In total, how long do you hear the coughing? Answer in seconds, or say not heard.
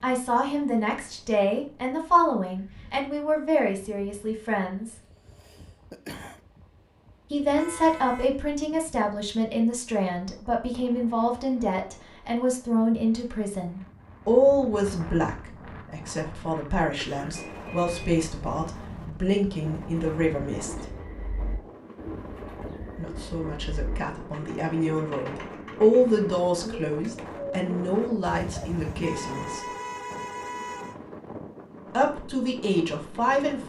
2 s.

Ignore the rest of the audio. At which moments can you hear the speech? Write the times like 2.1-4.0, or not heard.
0.0-5.0, 7.3-20.8, 22.9-29.6, 31.9-33.6.